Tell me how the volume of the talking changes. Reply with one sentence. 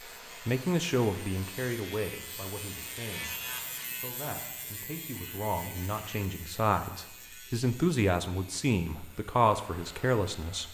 The volume of the talking goes down, then up.